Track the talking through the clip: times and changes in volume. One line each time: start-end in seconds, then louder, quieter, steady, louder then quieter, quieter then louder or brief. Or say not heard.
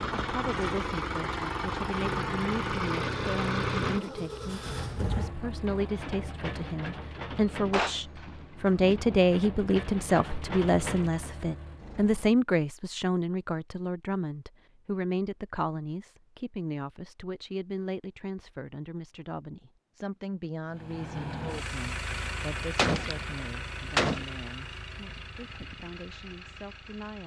0.1-27.2 louder then quieter.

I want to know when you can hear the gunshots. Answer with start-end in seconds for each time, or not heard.
7.5-9.2, 22.8-24.2.